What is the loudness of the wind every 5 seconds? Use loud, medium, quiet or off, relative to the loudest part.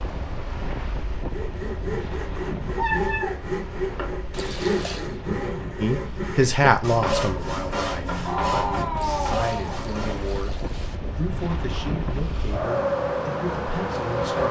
medium, medium, loud.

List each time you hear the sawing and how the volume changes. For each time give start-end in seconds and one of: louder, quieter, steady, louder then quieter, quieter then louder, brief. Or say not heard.
1.1-10.3 steady.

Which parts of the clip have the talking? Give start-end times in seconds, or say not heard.
5.8-14.4.